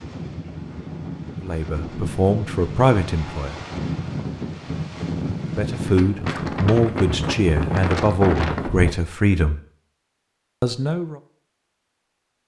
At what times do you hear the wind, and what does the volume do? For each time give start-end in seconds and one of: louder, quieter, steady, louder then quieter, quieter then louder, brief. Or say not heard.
0.0-8.9 louder.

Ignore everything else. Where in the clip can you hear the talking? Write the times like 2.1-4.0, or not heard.
1.4-3.6, 5.5-9.6, 10.6-11.2.